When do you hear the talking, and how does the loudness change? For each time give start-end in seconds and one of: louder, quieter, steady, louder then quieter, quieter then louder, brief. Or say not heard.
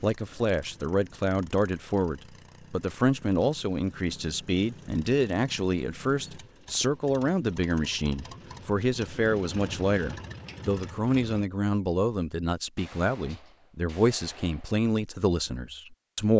0.0-16.3 steady.